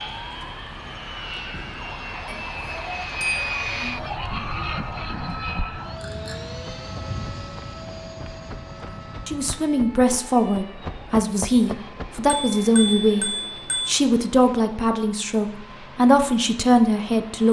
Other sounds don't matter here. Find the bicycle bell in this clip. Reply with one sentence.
You can hear the bicycle bell from 2.2 to 4.1 s, from 6.0 to 6.4 s and from 12.2 to 13.9 s.